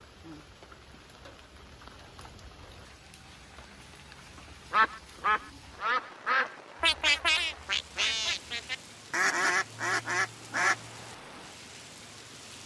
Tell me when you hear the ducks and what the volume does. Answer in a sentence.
You can hear the ducks from 4.7 to 10.8 s, at a steady volume.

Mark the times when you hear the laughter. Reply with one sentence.
The laughter can't be heard in this clip.